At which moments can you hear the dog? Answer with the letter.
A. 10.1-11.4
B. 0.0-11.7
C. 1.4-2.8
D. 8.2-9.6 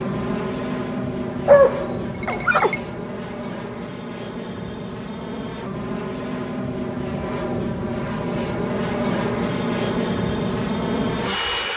C.